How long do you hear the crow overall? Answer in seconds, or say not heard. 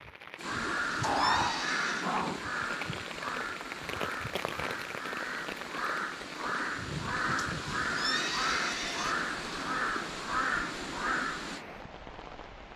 11 s.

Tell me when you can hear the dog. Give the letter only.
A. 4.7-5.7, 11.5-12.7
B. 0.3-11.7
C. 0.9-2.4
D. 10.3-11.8
C.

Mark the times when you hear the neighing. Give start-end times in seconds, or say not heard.
1.1-2.1, 8.0-9.2.